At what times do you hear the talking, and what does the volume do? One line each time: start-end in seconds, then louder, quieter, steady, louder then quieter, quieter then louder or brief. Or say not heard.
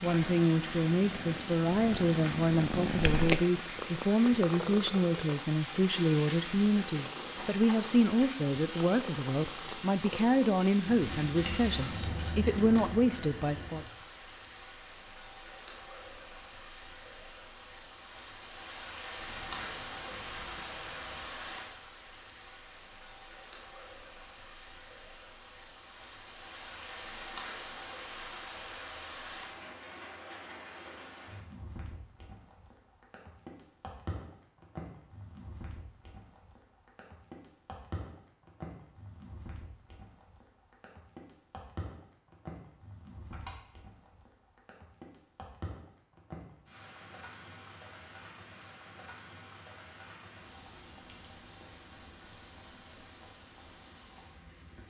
0.0-13.8 steady.